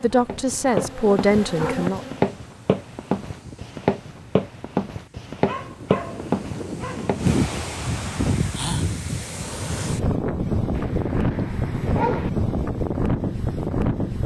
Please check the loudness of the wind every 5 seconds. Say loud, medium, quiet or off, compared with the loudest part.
quiet, loud, loud.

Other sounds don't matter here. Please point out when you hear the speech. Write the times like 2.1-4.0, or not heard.
0.0-2.0.